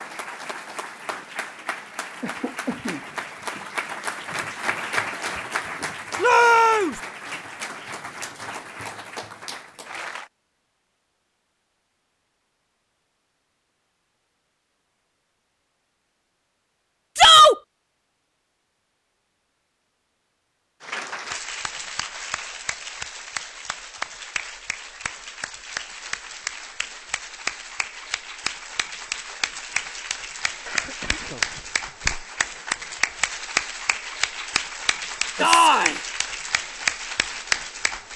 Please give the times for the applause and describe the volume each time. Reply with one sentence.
You can hear the applause from 0.0 to 10.3 s, getting louder then quieter; and from 20.8 to 38.1 s, getting louder.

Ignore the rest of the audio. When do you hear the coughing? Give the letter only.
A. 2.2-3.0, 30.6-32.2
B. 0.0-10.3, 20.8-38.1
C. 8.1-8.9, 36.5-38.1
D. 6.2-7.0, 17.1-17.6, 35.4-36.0
A.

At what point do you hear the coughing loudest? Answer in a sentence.
The loudest moment of the coughing is at 3 seconds.